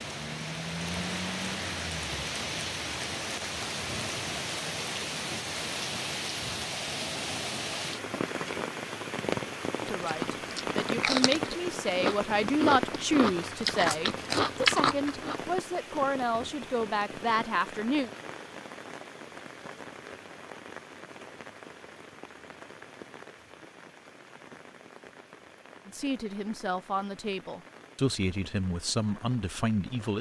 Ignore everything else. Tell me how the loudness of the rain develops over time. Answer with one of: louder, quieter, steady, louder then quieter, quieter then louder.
quieter.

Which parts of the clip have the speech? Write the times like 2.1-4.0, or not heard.
9.8-18.1, 25.9-30.1.